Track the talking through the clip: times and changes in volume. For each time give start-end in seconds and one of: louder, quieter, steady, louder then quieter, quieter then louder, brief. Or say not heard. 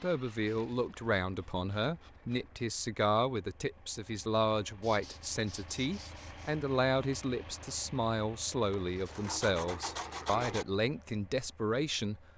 0.0-12.2 steady.